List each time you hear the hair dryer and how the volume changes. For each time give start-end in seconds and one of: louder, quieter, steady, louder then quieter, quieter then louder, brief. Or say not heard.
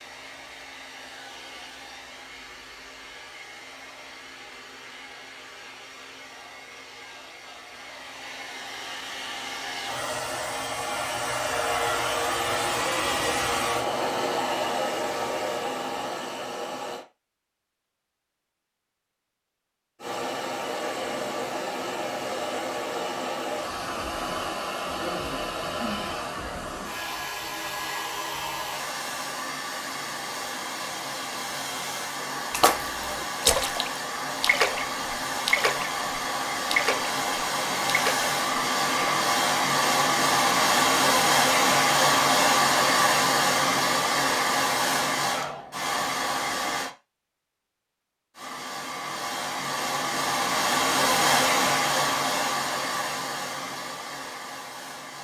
0.0-17.1 louder
20.0-46.9 louder
48.4-55.1 louder then quieter.